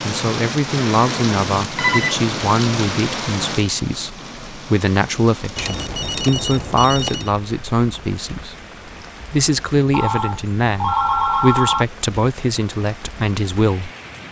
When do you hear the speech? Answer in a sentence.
You can hear the speech from 0.0 to 8.6 s and from 9.3 to 13.9 s.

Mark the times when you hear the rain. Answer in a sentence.
The rain can be heard from 0.0 to 14.2 s.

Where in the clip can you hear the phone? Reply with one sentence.
The phone can be heard from 1.8 to 2.2 s, from 5.5 to 7.3 s and from 9.9 to 11.8 s.